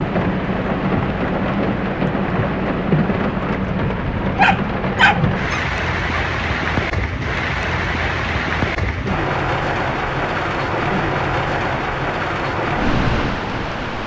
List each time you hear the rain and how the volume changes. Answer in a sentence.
The rain can be heard from 0.0 to 14.0 s, at a steady volume.